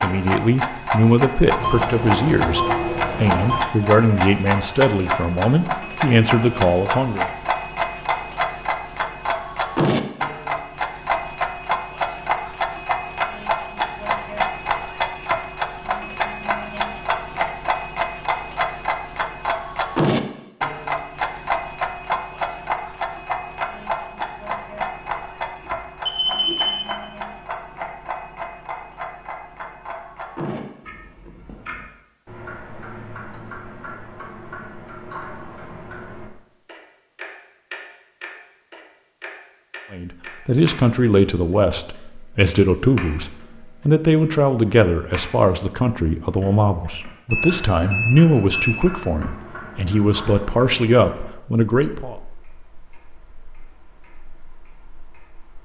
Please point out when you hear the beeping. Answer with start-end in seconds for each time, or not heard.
1.6-3.6, 25.6-26.9, 47.3-48.9.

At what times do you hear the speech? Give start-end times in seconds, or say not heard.
0.0-7.3, 39.9-52.1.